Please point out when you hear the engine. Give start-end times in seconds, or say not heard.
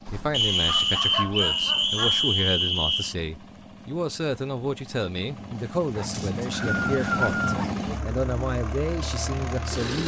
0.0-10.0.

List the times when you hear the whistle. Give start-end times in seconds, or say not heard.
0.3-3.1, 6.1-7.3.